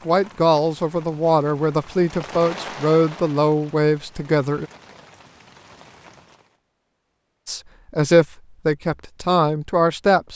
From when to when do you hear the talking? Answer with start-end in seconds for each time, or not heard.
0.1-4.7, 7.5-10.3.